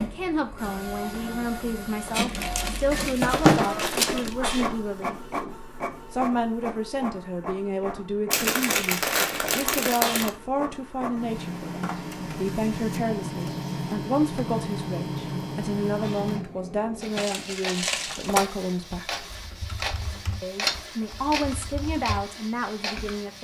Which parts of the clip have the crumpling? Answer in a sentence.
The crumpling can be heard from 2.1 to 4.3 s, from 8.3 to 10.3 s and from 17.1 to 18.4 s.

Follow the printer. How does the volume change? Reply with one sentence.
The loudness of the printer stays about the same.